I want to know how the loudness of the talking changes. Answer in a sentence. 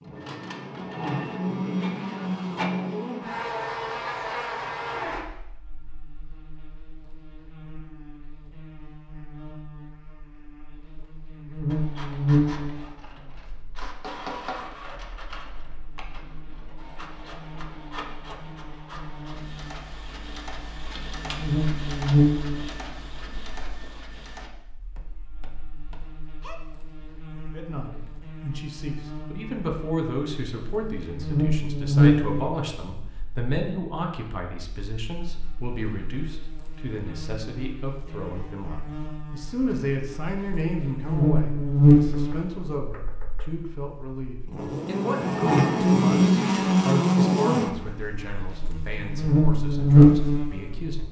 The volume of the talking stays about the same.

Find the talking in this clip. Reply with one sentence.
You can hear the talking from 27.5 to 51.0 s.